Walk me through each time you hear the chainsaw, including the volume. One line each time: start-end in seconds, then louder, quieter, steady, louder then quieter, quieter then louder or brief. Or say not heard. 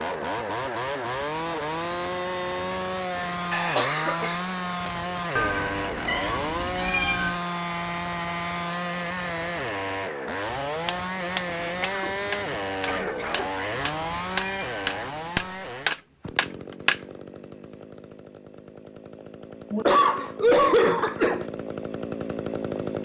0.0-23.0 quieter.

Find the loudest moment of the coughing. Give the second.
21 s.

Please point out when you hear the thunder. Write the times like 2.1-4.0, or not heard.
not heard.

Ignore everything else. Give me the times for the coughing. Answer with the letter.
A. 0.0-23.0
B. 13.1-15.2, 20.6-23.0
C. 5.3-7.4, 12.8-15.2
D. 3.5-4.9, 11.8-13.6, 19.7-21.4
D.